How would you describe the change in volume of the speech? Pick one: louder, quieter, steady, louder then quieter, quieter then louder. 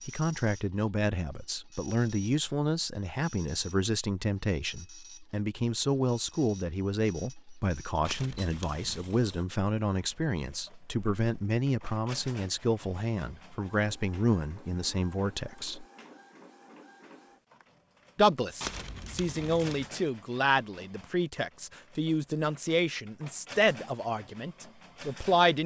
steady.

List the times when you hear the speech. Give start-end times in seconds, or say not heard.
0.1-15.8, 18.1-25.6.